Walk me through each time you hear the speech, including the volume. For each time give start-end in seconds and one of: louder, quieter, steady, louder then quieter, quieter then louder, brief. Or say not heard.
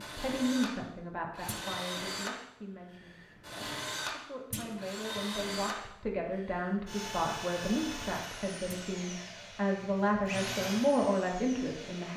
0.0-12.1 quieter then louder.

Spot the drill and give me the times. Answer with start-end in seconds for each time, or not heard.
0.0-12.1.